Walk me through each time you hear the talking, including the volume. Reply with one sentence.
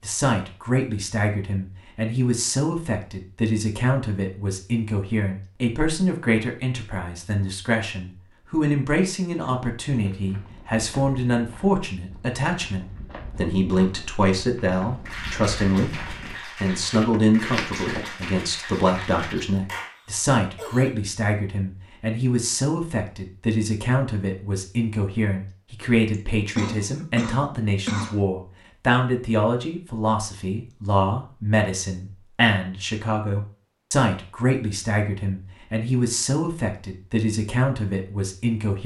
You can hear the talking from 0.0 to 38.8 s, at a steady volume.